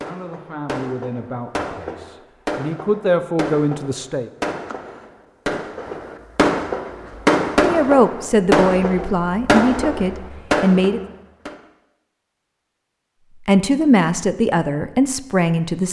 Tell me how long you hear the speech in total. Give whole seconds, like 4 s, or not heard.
10 s.